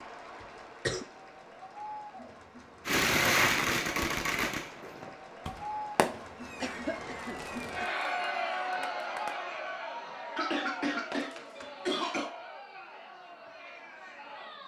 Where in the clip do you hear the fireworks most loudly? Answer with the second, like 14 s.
3 s.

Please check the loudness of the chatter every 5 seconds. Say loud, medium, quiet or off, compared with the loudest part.
medium, loud, medium.